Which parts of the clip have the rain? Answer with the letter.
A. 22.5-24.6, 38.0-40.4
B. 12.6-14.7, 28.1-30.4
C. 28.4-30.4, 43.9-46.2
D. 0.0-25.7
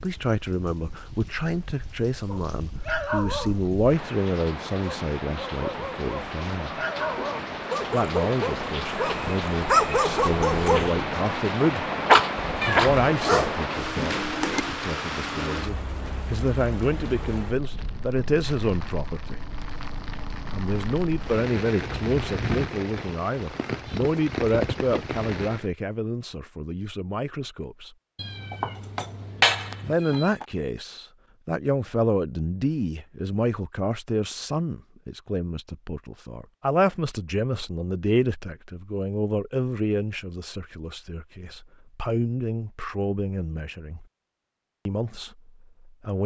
D.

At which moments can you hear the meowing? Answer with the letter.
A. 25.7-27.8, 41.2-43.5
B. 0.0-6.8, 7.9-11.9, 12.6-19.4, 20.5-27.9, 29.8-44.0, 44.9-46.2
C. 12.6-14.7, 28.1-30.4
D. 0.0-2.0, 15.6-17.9
C.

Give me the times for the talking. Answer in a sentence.
The talking can be heard from 0.0 to 6.8 s, from 7.9 to 11.9 s, from 12.6 to 19.4 s, from 20.5 to 27.9 s, from 29.8 to 44.0 s and from 44.9 to 46.2 s.